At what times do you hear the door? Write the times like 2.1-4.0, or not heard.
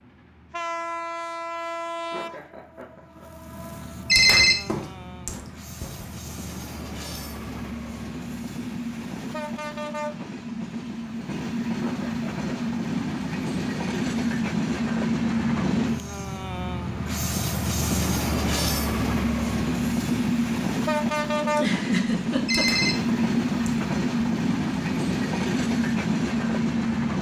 not heard.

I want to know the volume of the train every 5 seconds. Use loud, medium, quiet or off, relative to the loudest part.
medium, medium, loud, loud, loud, loud.